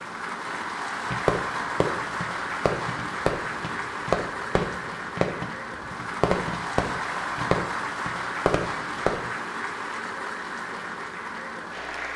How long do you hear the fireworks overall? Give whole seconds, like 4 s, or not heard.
8 s.